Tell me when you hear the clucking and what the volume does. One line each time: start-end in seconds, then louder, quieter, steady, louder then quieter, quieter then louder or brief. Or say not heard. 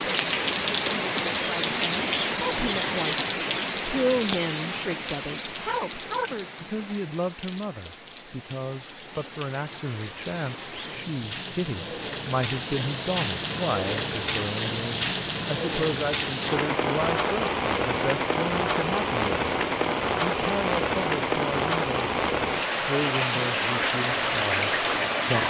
not heard.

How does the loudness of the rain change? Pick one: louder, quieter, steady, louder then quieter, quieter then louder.
quieter then louder.